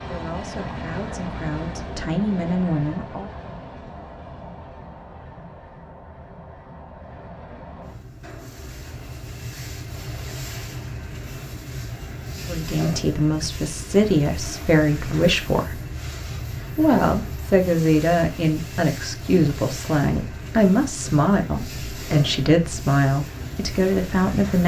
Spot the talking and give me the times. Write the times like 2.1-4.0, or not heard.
0.0-3.3, 12.3-15.8, 16.8-24.6.